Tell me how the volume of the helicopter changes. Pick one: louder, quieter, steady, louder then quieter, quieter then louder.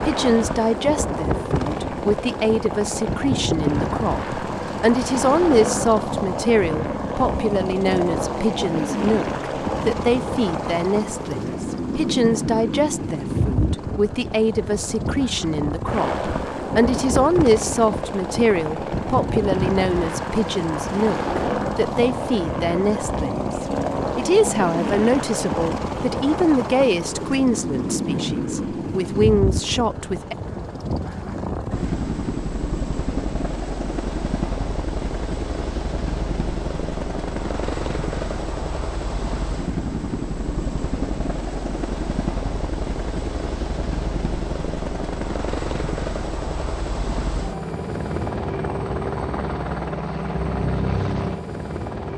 steady.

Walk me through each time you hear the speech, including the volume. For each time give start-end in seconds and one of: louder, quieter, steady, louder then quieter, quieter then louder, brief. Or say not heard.
0.0-30.4 steady.